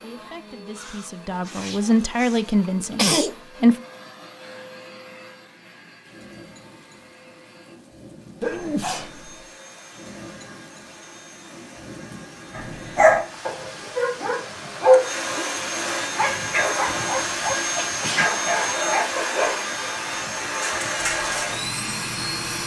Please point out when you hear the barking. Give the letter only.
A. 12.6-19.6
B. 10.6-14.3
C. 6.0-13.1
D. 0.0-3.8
A.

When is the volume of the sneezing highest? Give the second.
3 s.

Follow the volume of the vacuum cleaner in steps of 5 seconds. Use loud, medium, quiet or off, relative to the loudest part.
quiet, quiet, quiet, loud, loud.